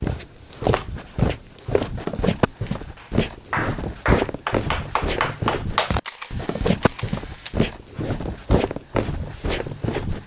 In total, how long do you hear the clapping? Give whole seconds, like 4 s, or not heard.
3 s.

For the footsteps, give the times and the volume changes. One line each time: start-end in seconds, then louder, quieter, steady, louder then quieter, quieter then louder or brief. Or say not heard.
0.0-10.2 steady.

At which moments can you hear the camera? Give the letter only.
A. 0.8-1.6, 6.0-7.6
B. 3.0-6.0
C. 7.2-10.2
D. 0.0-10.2
A.